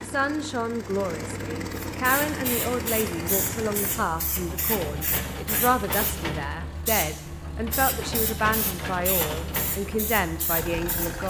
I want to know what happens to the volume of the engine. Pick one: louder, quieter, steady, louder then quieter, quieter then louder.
steady.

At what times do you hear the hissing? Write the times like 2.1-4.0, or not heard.
1.9-11.2.